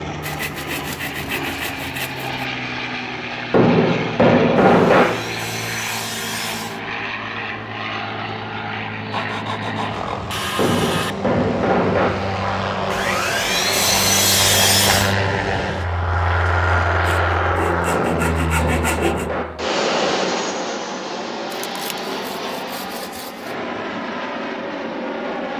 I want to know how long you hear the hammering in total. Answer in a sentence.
The hammering can be heard for 5 seconds in total.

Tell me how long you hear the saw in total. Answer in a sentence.
You can hear the saw for 13 seconds altogether.